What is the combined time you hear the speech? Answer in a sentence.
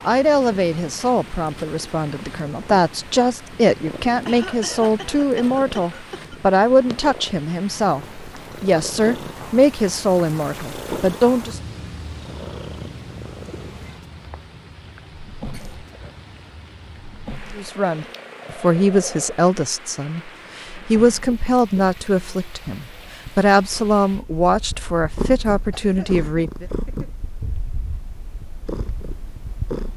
The speech can be heard for 21 seconds in total.